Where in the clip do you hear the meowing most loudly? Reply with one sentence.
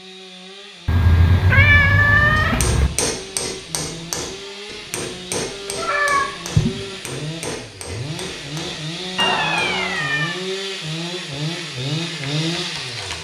The volume of the meowing peaks at 2 seconds.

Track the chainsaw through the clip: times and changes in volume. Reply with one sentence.
The chainsaw can be heard from 0.0 to 13.1 s, getting louder.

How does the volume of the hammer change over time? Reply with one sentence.
The volume of the hammer goes down.